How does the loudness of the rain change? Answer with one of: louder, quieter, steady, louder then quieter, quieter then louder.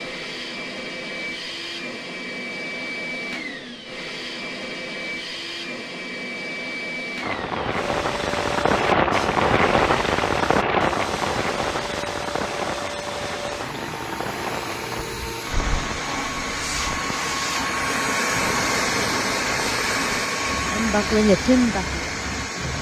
quieter.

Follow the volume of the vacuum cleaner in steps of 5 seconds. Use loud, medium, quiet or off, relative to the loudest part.
medium, medium, medium, loud, loud.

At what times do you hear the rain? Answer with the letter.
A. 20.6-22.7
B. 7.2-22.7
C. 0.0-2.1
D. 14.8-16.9
B.